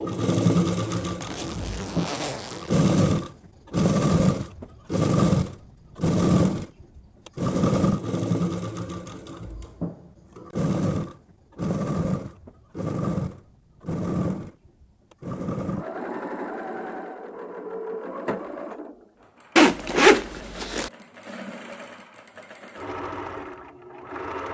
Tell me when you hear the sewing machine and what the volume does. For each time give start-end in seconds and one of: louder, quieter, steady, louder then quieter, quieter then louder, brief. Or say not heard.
0.0-24.4 quieter.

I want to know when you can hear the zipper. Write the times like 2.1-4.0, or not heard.
0.8-2.8, 19.6-20.9.